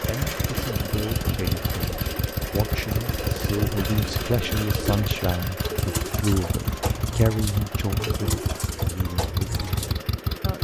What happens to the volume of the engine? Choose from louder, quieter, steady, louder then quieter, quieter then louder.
steady.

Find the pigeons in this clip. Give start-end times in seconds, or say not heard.
0.3-10.0.